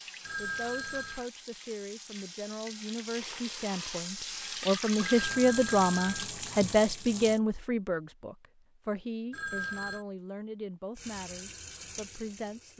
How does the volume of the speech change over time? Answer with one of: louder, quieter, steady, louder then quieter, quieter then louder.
louder then quieter.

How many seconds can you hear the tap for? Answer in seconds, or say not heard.
9 s.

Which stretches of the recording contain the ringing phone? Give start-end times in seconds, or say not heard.
0.2-1.3, 5.0-6.3, 9.3-10.1.